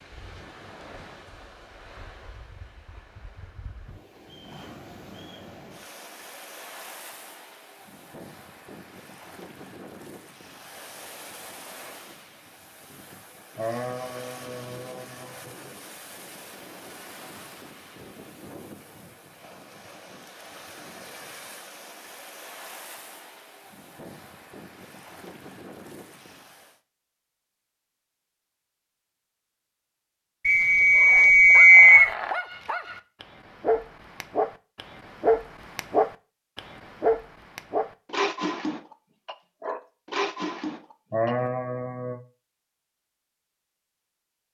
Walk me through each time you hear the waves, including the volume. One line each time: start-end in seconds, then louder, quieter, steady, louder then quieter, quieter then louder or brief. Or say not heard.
0.0-26.8 steady.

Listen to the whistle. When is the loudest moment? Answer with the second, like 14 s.
32 s.